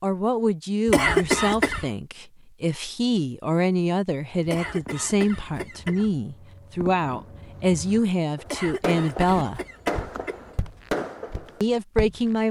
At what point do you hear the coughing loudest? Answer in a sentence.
The volume of the coughing peaks at 1 second.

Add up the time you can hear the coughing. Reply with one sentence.
You can hear the coughing for 5 seconds altogether.